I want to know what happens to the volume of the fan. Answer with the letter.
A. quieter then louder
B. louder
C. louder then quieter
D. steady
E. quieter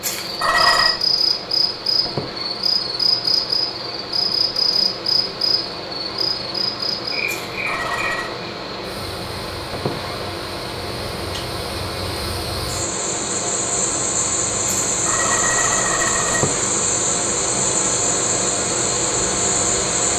B.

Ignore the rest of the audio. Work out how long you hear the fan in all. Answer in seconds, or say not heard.
20 s.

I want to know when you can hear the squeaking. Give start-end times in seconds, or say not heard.
2.0-2.5, 9.7-10.2, 16.3-16.8.